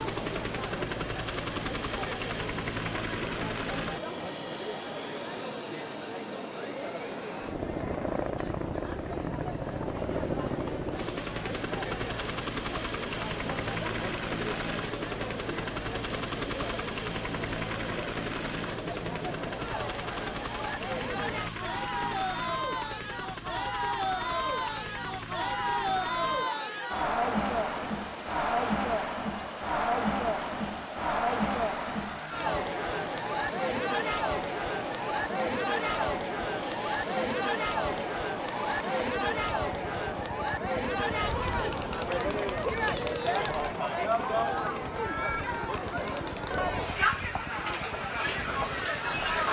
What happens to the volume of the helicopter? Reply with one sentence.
The volume of the helicopter goes down.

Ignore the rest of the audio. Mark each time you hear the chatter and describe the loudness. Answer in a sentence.
The chatter can be heard from 0.0 to 49.4 s, getting louder.